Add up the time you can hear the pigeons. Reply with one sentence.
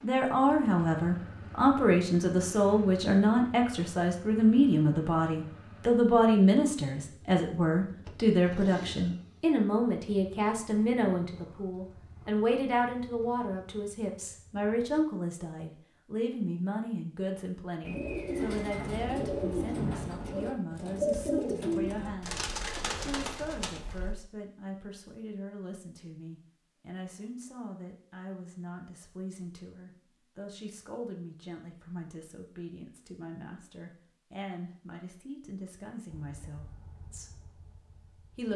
The pigeons can be heard for 6 seconds in total.